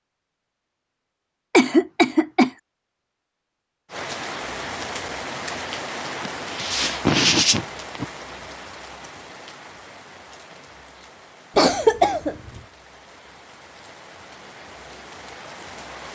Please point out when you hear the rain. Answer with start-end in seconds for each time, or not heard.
3.9-16.1.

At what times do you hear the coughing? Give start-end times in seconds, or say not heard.
1.5-2.5, 6.2-8.1, 11.6-12.6.